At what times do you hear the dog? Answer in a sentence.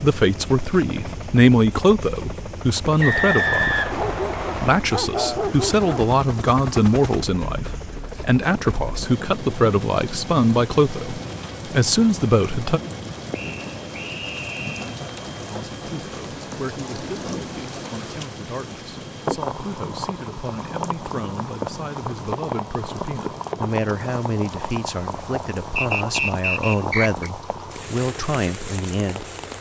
You can hear the dog from 3.9 to 6.2 s.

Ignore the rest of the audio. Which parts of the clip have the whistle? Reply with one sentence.
You can hear the whistle from 3.0 to 4.8 s, from 13.3 to 14.8 s and from 25.8 to 27.3 s.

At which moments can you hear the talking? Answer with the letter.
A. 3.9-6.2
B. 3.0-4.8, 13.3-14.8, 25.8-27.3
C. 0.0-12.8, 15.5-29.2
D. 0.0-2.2
C.